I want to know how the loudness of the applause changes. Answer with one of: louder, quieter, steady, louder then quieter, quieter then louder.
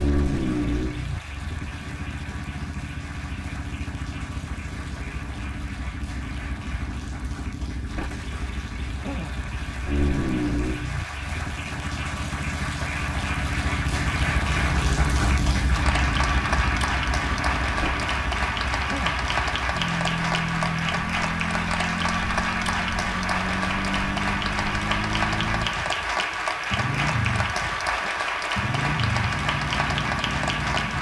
louder.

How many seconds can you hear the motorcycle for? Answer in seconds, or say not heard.
31 s.